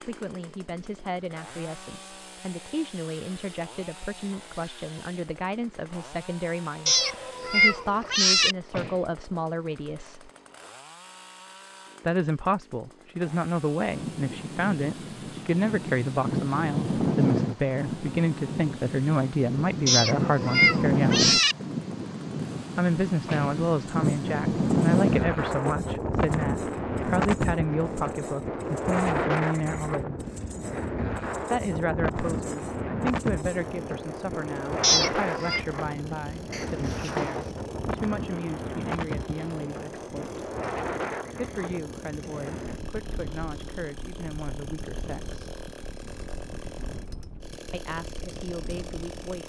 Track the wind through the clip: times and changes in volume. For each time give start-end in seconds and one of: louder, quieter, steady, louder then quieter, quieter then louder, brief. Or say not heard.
13.9-49.4 quieter.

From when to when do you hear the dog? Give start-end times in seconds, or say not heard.
not heard.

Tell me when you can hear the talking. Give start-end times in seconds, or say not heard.
0.0-10.3, 12.0-21.2, 22.8-30.2, 31.5-40.5, 41.4-45.4, 47.7-49.4.